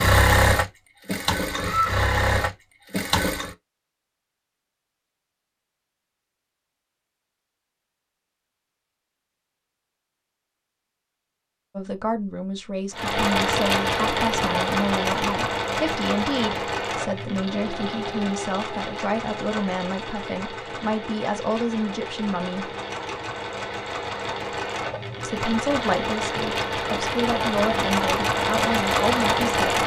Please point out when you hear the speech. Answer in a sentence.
The speech can be heard from 11.8 to 22.7 s and from 25.2 to 29.8 s.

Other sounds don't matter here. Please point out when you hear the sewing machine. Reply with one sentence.
The sewing machine can be heard from 0.0 to 3.5 s and from 12.9 to 29.8 s.